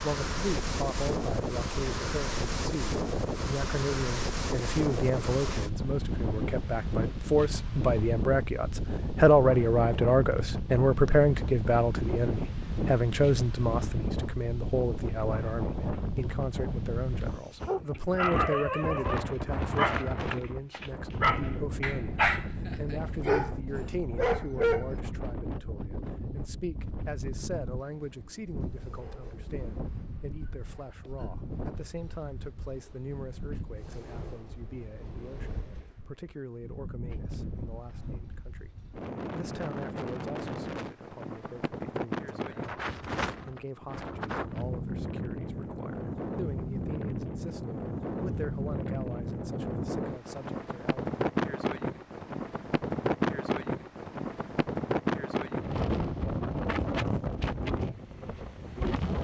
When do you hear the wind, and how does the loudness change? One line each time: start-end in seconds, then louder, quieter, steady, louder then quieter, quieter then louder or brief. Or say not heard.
0.0-59.1 quieter then louder.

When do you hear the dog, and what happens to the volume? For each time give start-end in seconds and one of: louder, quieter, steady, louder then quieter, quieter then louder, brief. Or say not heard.
17.6-24.9 steady.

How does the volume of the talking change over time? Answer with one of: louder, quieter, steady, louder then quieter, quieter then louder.
quieter.